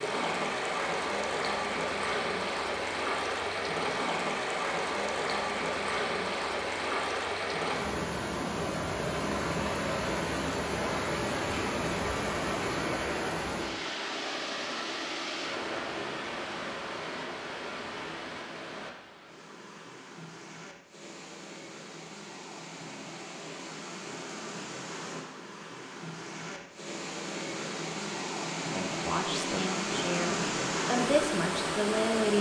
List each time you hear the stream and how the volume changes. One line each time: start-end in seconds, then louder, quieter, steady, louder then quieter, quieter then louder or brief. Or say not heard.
0.0-32.3 quieter then louder.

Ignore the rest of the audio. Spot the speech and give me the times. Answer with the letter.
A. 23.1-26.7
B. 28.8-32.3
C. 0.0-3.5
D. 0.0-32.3
B.